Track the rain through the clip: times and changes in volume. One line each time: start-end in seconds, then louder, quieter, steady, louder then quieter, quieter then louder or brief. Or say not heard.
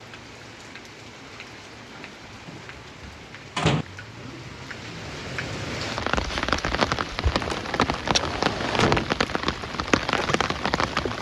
0.0-11.1 louder.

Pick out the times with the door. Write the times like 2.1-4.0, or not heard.
2.0-3.9, 7.3-9.2.